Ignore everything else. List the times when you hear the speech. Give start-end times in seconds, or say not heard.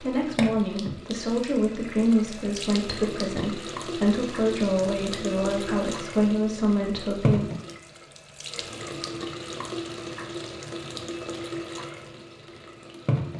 0.0-7.5.